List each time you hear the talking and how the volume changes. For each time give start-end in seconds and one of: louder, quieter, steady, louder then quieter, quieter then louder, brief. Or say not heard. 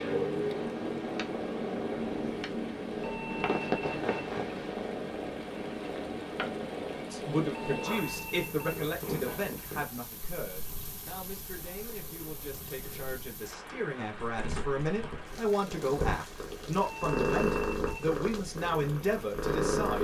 7.1-19.9 quieter then louder.